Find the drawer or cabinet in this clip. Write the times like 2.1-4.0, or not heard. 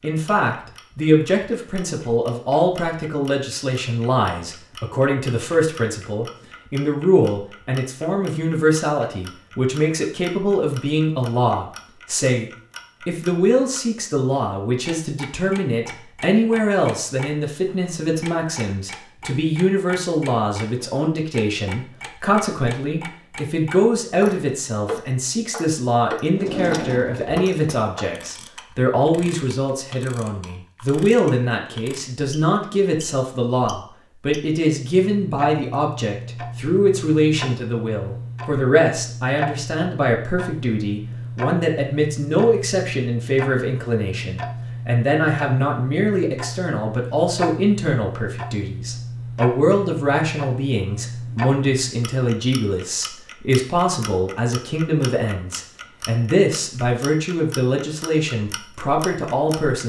26.4-27.8.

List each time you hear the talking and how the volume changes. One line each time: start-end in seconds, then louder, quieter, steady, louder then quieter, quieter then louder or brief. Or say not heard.
0.0-59.8 steady.